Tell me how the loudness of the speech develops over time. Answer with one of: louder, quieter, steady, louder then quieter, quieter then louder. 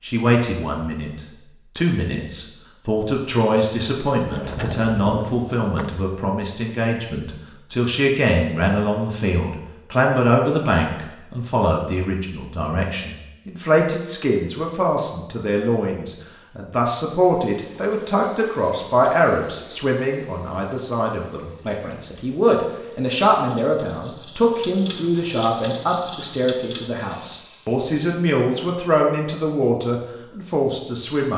steady.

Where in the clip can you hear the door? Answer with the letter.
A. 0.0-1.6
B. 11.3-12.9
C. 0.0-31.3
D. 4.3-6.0
D.